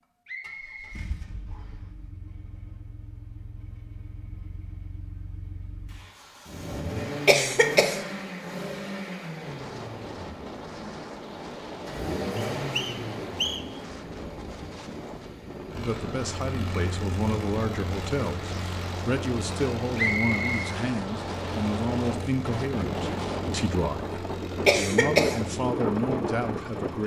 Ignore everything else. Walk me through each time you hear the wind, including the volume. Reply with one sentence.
The wind can be heard from 9.3 to 27.0 s, getting louder.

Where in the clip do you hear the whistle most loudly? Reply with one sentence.
The volume of the whistle peaks at 20 seconds.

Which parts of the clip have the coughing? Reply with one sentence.
The coughing can be heard from 7.2 to 8.0 s and from 24.6 to 25.4 s.